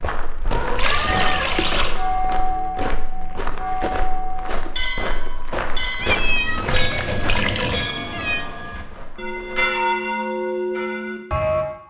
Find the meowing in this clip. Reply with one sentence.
The meowing can be heard from 0.5 to 1.8 s and from 6.0 to 8.4 s.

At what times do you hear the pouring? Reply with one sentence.
The pouring can be heard from 0.8 to 2.0 s and from 6.7 to 7.9 s.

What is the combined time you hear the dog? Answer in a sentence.
The dog can't be heard in this clip.